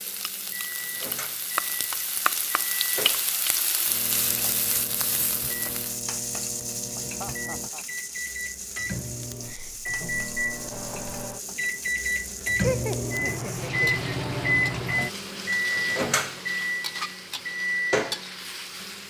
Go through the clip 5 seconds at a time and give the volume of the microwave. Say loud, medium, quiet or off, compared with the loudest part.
quiet, medium, loud, loud.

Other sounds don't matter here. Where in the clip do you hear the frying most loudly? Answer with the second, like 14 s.
3 s.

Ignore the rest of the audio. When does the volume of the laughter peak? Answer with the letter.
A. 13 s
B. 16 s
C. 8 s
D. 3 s
A.